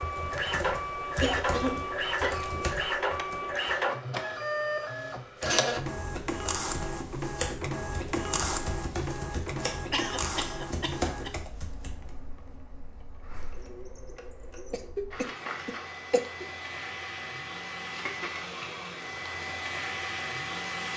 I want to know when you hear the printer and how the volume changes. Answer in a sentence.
You can hear the printer from 0.0 to 20.9 s, getting quieter then louder.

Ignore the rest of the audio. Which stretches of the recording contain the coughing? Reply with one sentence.
You can hear the coughing from 1.2 to 2.6 s, from 9.9 to 11.4 s and from 14.7 to 16.4 s.